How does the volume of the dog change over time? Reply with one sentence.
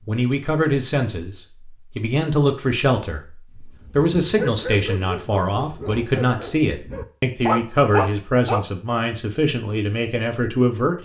The volume of the dog goes down, then up.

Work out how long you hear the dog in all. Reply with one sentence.
You can hear the dog for 5 seconds altogether.